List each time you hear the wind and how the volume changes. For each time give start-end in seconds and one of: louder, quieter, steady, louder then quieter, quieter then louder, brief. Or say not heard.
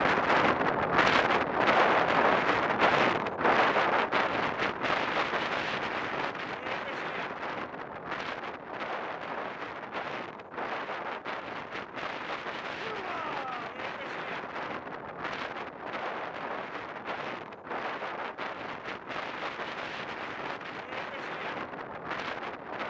0.0-22.8 quieter.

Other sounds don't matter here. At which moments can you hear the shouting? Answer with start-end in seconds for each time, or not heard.
12.8-13.8.